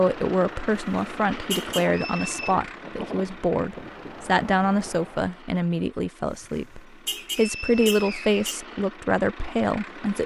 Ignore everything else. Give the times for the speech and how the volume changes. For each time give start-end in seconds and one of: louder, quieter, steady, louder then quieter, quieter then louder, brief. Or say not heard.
0.0-10.2 steady.